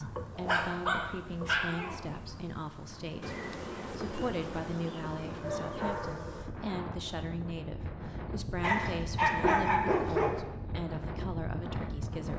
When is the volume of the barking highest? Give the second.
9 s.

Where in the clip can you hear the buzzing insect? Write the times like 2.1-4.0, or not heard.
0.0-6.5.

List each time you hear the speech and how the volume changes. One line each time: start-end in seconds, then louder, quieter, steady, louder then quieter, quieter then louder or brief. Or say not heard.
0.1-12.3 steady.